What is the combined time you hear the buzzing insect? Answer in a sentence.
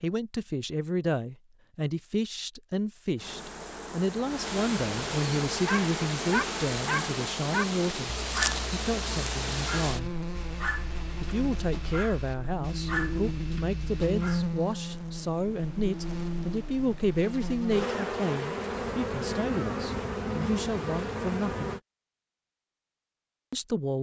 The buzzing insect can be heard for 19 seconds in total.